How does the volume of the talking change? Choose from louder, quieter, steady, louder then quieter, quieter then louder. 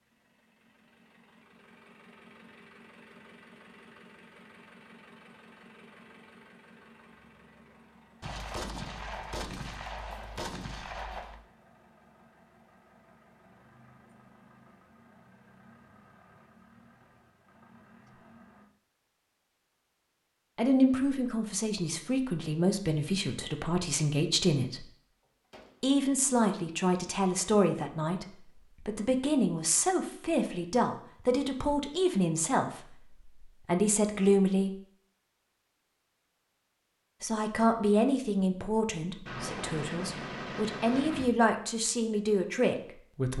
steady.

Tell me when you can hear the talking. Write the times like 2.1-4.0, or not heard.
20.6-24.9, 25.8-34.8, 37.2-43.3.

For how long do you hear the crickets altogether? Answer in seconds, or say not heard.
not heard.